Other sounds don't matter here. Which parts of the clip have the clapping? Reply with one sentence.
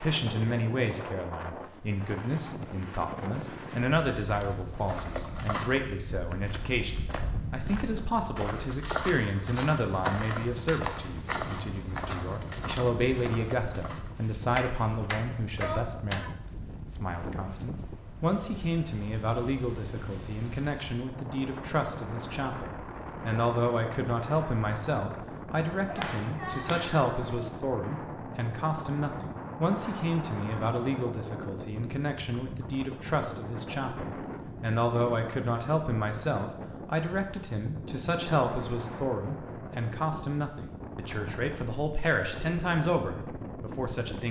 The clapping can be heard from 14.6 to 16.4 s and from 25.9 to 27.5 s.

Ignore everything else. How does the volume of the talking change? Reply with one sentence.
The volume of the talking stays about the same.